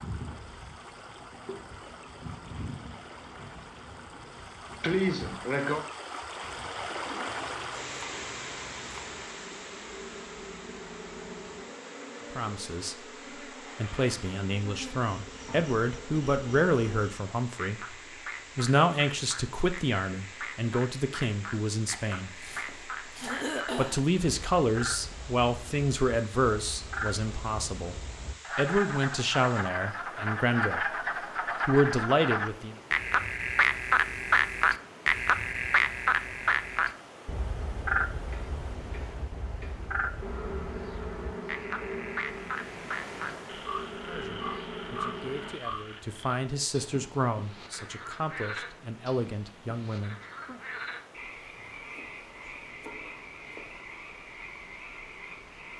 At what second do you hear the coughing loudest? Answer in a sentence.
The loudest moment of the coughing is at 5 seconds.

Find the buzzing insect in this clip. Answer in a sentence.
The buzzing insect can be heard from 0.0 to 17.1 s and from 40.2 to 45.5 s.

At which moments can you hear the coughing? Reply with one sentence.
The coughing can be heard from 4.8 to 5.8 s, from 23.2 to 24.0 s and from 38.3 to 39.9 s.